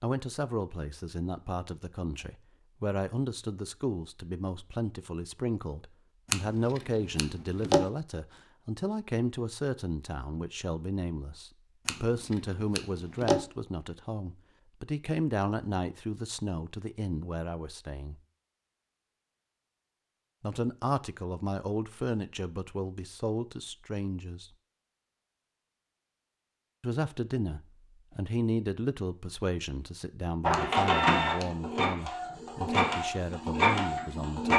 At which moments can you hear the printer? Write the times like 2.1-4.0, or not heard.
30.4-34.5.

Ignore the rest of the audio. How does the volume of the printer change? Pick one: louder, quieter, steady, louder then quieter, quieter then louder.
quieter then louder.